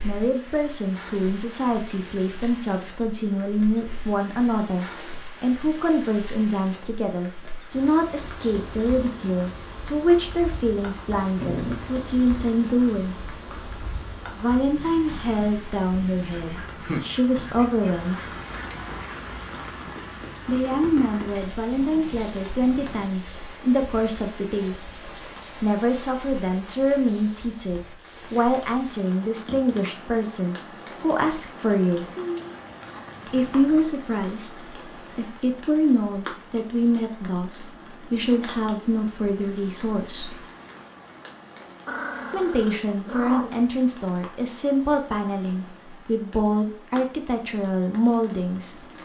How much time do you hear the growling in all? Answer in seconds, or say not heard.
4 s.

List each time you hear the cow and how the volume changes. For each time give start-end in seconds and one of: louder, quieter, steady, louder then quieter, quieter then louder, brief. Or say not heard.
not heard.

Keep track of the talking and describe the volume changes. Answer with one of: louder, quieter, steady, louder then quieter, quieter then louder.
steady.